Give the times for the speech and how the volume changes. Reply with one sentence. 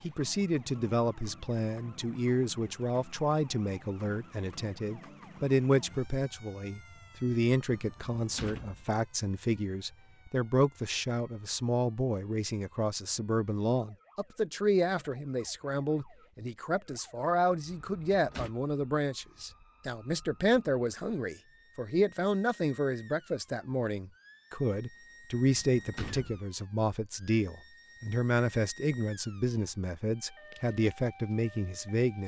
The speech can be heard from 0.0 to 32.2 s, at a steady volume.